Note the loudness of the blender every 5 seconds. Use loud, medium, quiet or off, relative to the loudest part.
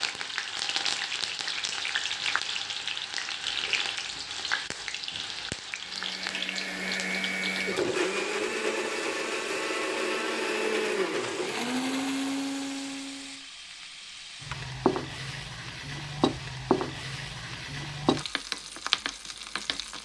off, loud, loud, off.